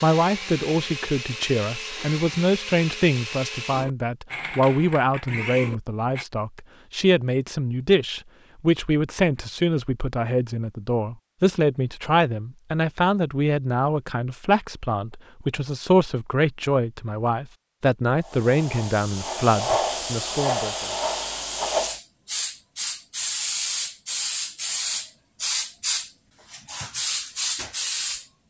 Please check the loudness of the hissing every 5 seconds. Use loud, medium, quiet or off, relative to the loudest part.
off, off, off, loud, loud, loud.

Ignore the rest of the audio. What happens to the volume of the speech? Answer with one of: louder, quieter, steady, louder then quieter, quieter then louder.
steady.